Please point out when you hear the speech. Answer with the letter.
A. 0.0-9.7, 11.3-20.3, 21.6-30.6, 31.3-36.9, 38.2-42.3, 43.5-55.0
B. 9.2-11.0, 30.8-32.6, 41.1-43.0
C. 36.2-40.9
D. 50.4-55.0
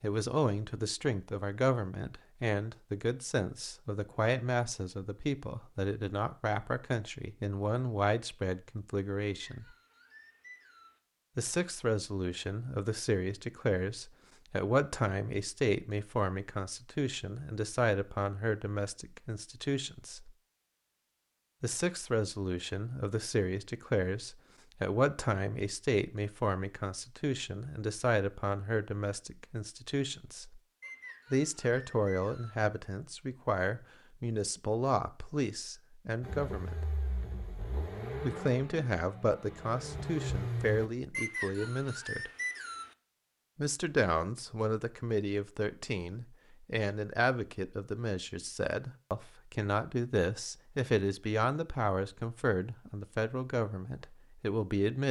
A.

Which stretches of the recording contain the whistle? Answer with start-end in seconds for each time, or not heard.
9.2-11.0, 30.8-32.6, 41.1-43.0.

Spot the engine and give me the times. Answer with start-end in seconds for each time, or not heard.
36.2-40.9.